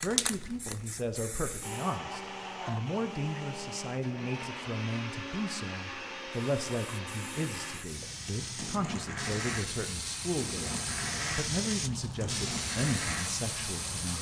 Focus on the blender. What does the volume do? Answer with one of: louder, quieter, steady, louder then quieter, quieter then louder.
steady.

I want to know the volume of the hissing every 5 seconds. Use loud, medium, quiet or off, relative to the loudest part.
loud, medium, loud.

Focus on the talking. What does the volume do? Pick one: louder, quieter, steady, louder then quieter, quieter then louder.
steady.